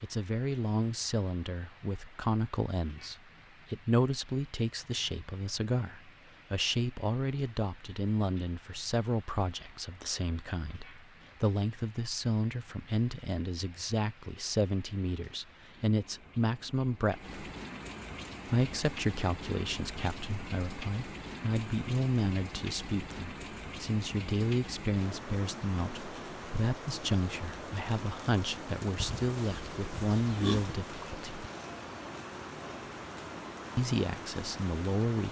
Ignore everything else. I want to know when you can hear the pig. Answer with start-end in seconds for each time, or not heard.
29.0-30.8.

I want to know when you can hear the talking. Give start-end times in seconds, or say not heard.
0.0-17.4, 18.4-31.4, 33.8-35.2.